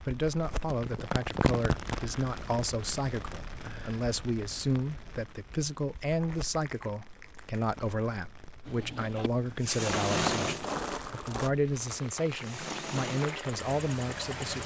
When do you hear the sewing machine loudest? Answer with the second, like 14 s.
10 s.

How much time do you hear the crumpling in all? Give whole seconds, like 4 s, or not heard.
4 s.